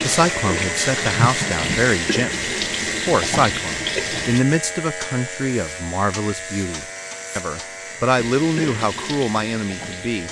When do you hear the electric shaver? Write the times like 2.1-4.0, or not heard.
0.0-10.2.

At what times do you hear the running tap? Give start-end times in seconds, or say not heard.
0.0-4.5, 8.2-10.2.